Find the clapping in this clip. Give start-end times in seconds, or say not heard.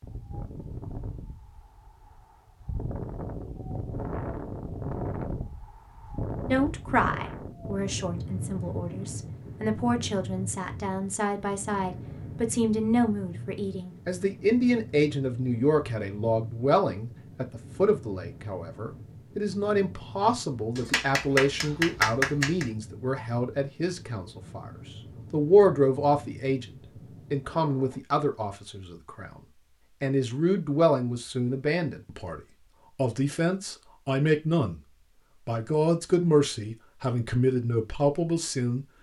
20.8-22.7.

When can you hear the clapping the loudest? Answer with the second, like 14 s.
22 s.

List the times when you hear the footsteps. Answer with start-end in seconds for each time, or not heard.
not heard.